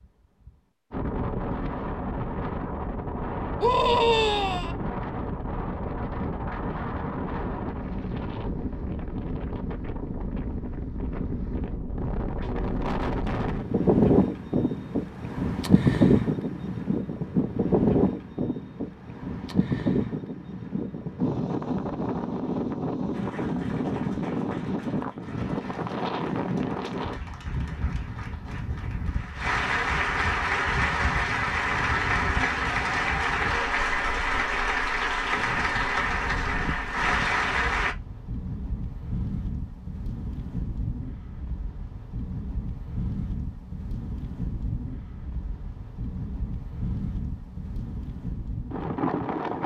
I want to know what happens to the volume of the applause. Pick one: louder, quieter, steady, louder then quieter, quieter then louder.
louder.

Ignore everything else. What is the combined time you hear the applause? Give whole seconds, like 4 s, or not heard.
15 s.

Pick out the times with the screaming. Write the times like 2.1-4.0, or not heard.
3.6-4.8.